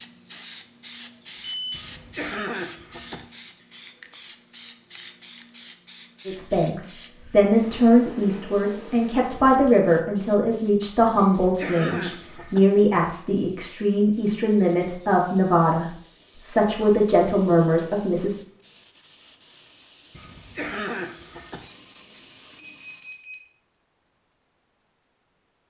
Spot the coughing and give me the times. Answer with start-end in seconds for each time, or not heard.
1.7-3.2, 11.2-12.7, 20.1-21.6.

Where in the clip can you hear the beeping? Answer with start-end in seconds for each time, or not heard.
1.4-1.9, 22.6-23.5.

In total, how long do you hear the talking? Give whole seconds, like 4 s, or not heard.
12 s.